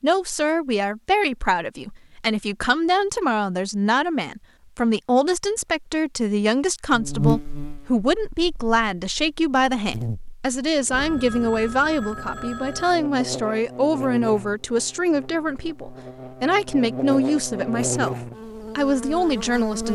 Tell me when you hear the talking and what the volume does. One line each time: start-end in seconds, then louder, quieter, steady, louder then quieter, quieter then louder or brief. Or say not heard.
0.0-18.1 steady
18.8-19.9 brief.